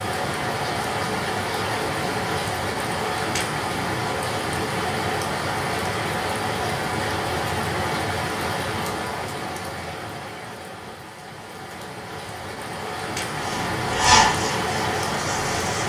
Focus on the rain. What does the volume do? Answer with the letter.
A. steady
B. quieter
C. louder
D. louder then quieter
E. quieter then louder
E.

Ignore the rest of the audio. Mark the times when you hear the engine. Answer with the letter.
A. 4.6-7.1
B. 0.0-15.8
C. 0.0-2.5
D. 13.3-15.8
D.